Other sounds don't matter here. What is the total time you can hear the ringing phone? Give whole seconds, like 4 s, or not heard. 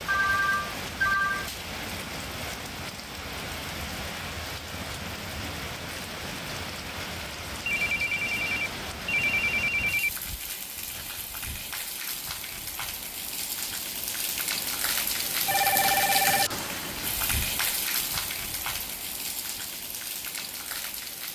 5 s.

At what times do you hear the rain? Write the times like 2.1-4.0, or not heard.
0.0-21.3.